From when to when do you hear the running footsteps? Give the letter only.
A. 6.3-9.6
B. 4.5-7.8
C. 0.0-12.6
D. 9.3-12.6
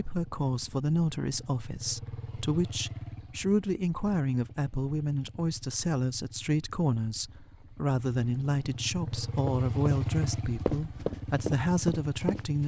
D.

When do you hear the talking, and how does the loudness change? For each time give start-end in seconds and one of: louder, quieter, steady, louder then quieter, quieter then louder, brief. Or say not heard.
0.0-12.6 steady.